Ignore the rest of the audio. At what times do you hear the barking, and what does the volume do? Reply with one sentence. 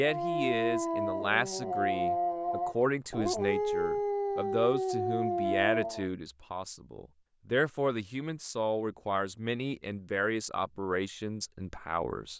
You can hear the barking from 0.0 to 6.1 s, at a steady volume.